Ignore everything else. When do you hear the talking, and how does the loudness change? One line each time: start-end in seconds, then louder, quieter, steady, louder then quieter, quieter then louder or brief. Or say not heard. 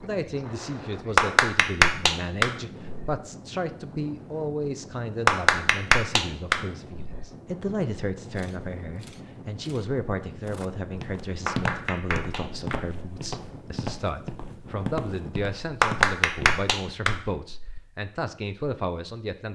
0.0-19.4 steady.